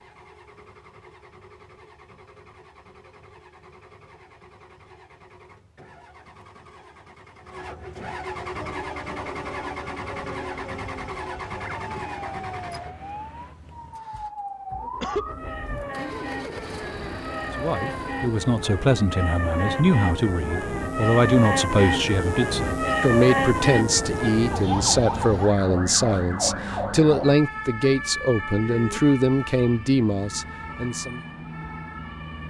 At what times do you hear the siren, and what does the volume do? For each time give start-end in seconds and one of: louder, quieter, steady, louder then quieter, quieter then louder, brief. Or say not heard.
8.5-32.4 louder then quieter.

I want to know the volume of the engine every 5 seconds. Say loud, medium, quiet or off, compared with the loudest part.
quiet, loud, loud, loud, off, off, off.